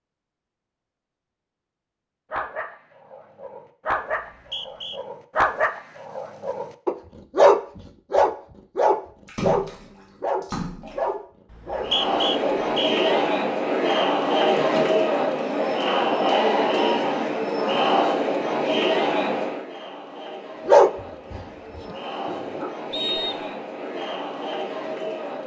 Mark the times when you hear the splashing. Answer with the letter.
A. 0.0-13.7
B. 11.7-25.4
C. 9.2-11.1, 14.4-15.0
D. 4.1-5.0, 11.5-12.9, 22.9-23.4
C.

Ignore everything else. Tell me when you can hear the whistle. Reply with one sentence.
The whistle can be heard from 4.1 to 5.0 s, from 11.5 to 12.9 s and from 22.9 to 23.4 s.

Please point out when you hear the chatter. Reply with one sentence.
The chatter can be heard from 11.7 to 25.4 s.